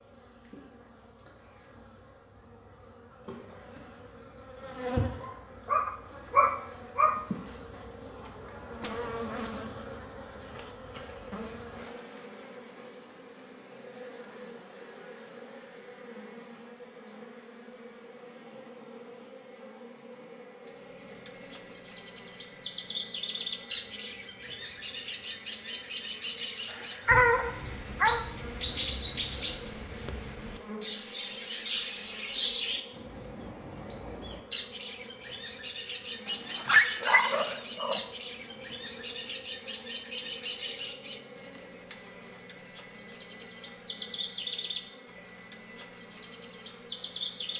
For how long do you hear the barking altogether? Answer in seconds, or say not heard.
5 s.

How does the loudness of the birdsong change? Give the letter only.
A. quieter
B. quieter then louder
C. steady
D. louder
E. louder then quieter
C.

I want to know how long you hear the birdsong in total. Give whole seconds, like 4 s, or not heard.
27 s.